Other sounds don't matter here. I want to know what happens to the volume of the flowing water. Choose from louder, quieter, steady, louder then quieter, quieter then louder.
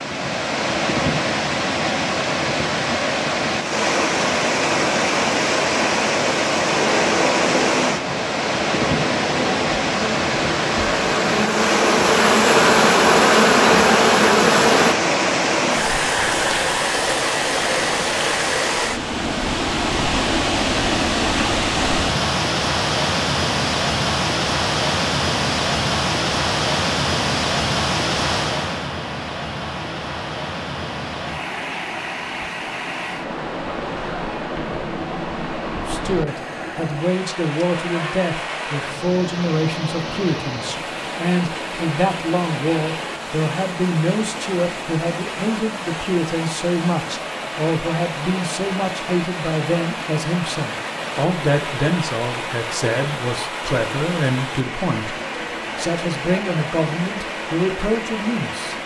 quieter.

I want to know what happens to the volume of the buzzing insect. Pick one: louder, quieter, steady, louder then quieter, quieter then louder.
louder.